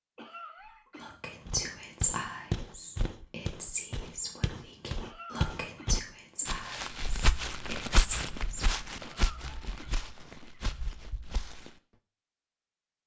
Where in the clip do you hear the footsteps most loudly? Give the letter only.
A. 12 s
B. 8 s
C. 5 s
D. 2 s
B.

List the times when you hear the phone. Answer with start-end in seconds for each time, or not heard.
not heard.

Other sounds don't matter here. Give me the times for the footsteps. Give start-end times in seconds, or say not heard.
1.4-11.7.